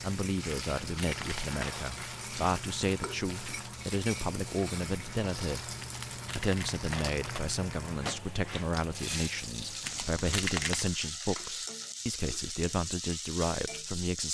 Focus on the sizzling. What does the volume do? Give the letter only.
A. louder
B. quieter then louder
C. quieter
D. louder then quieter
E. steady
E.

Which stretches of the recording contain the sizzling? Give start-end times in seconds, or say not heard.
0.0-14.2.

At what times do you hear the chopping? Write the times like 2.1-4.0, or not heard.
not heard.